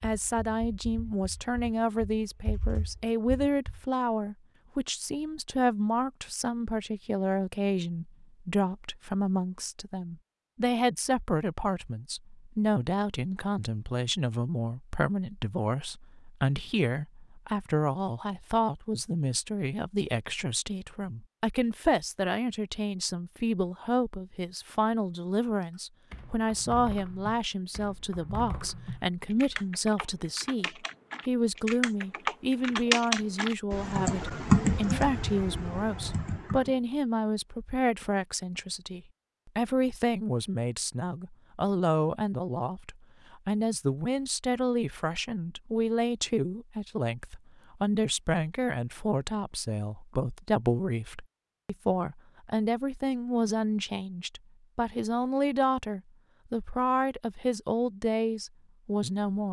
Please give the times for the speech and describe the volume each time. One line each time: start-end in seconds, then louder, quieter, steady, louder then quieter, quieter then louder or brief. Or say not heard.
0.0-59.4 steady.